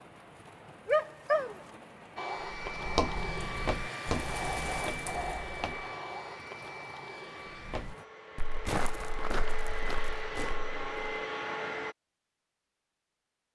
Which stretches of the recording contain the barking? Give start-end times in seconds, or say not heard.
0.8-1.6.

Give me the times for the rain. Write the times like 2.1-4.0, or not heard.
0.0-8.1.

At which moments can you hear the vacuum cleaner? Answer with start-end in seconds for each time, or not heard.
2.1-11.9.